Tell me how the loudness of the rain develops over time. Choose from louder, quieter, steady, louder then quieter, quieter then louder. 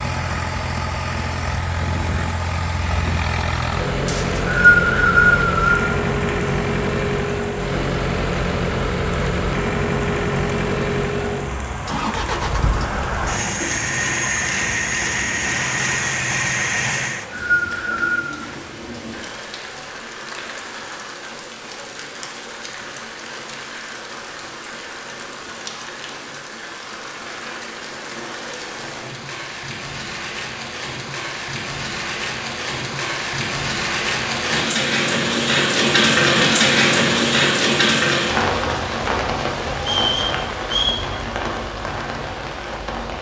louder.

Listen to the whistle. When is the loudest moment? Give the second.
5 s.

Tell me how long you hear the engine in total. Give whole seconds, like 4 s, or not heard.
17 s.